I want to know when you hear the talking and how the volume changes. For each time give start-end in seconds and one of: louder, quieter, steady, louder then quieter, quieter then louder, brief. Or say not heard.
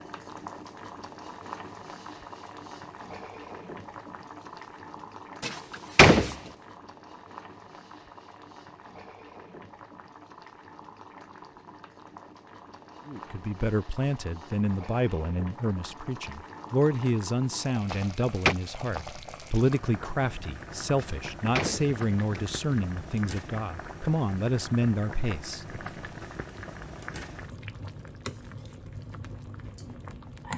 13.1-25.8 steady.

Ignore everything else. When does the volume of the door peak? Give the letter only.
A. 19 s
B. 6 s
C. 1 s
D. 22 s
B.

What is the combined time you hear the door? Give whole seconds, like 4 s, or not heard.
3 s.